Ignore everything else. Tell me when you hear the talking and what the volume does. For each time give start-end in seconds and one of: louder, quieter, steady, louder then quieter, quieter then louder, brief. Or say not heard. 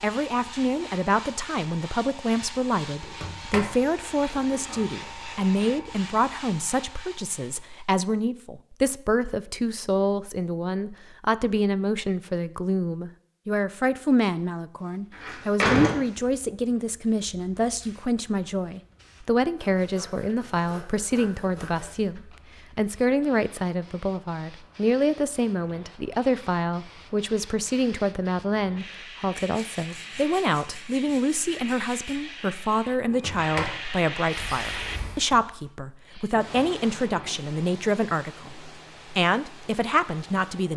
0.0-40.7 steady.